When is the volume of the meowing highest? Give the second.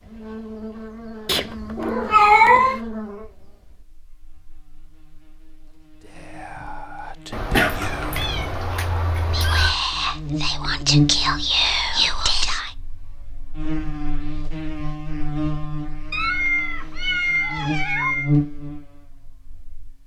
2 s.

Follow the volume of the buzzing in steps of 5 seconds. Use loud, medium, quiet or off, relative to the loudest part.
medium, quiet, loud, loud.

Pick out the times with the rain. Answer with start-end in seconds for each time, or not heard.
not heard.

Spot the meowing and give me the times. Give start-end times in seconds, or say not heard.
1.2-2.8, 7.3-9.8, 16.1-18.4.